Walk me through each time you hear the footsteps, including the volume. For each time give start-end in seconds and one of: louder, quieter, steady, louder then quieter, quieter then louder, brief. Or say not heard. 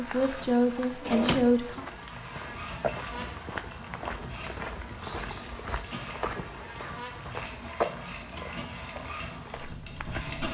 0.0-10.4 louder then quieter.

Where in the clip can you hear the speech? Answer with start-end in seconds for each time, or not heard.
0.0-1.9.